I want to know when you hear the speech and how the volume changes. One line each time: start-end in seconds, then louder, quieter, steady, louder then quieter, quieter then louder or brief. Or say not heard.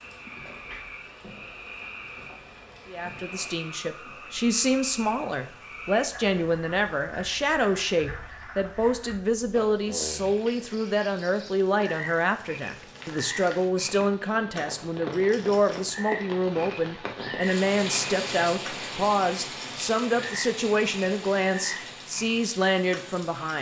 2.9-23.5 steady.